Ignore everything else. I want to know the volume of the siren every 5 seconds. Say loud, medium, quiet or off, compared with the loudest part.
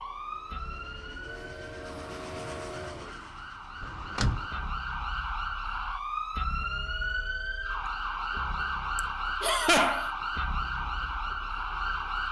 medium, loud, loud.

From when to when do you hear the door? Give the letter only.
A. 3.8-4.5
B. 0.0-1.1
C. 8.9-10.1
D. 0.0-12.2
A.